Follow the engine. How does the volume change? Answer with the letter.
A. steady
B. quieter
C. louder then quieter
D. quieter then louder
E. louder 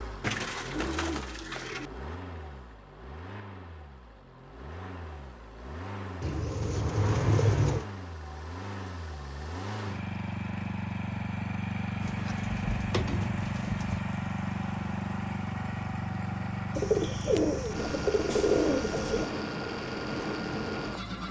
E.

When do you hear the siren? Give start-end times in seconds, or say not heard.
not heard.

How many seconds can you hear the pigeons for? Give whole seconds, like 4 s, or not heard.
8 s.